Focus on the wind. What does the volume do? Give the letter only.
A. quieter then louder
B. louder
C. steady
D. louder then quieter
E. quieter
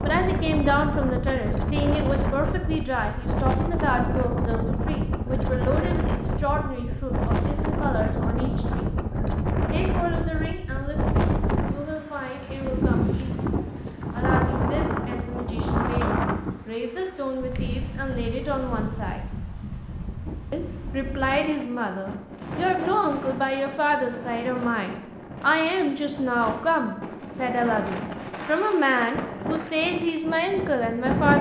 E.